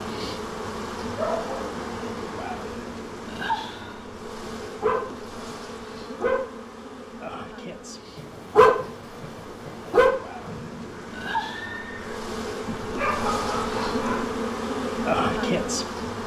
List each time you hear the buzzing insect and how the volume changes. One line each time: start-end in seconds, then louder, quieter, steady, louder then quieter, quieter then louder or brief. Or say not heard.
0.0-16.2 quieter then louder.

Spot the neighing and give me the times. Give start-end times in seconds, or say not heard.
10.3-12.2.